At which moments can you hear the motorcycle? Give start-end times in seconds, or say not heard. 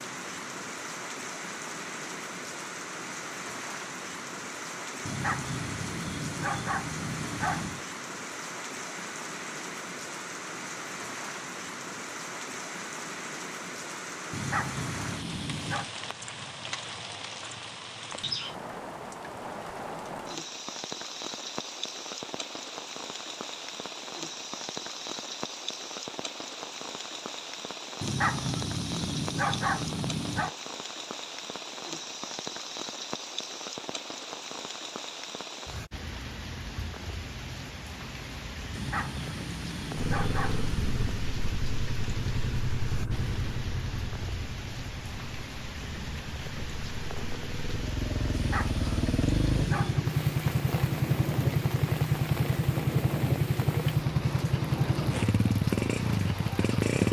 40.0-57.0.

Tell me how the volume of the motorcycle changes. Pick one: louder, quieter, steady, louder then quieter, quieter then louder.
quieter then louder.